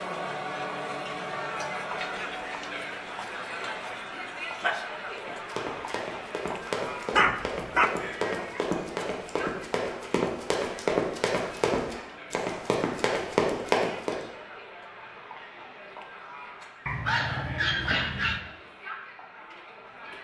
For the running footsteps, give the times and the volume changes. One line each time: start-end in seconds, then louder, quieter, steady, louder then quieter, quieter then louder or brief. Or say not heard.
5.2-14.2 louder.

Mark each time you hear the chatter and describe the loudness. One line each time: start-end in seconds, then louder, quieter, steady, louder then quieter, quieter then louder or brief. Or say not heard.
0.0-20.2 quieter.